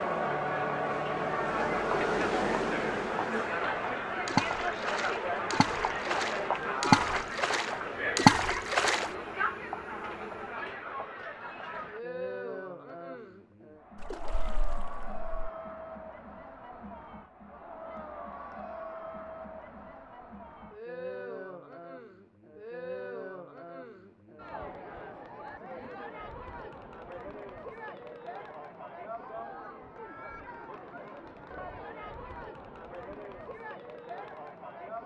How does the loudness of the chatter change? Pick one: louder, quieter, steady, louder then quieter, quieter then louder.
quieter.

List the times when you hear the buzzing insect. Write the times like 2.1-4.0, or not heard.
0.0-10.7.